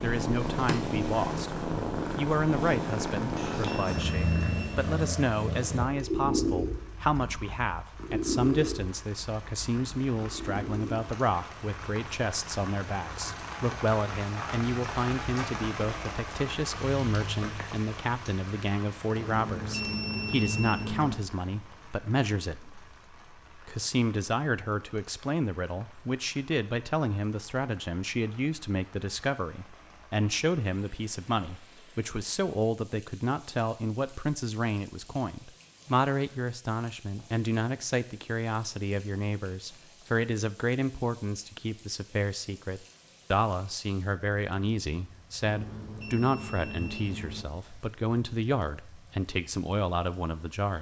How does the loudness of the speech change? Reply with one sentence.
The volume of the speech stays about the same.